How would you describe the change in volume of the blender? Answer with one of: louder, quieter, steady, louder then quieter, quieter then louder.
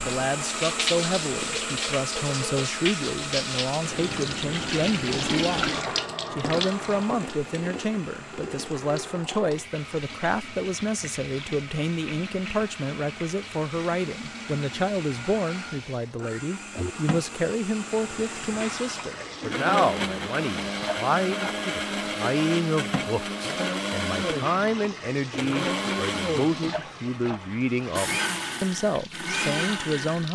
quieter then louder.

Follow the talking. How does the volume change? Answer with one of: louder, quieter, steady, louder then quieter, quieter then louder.
steady.